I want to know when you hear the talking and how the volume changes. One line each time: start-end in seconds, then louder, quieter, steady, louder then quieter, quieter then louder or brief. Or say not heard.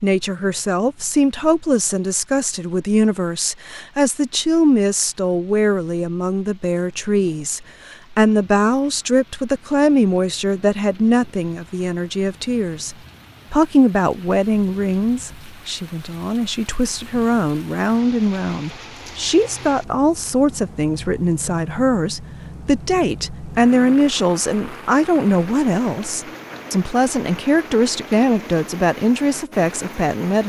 0.0-30.4 steady.